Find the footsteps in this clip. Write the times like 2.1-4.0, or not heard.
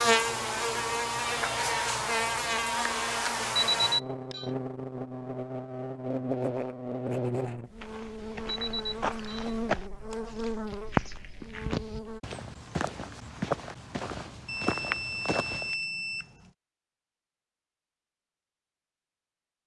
7.8-15.8.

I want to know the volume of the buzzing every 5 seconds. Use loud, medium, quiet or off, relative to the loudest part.
loud, medium, medium, off.